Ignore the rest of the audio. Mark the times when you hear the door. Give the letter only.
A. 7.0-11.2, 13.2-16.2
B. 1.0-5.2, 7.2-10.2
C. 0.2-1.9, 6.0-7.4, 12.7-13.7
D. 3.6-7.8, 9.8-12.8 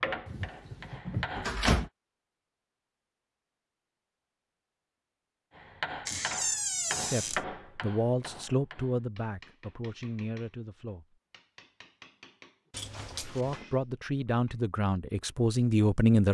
C.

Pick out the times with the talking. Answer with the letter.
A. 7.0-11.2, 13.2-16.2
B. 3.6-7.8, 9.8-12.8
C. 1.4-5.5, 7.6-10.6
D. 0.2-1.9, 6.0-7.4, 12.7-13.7
A.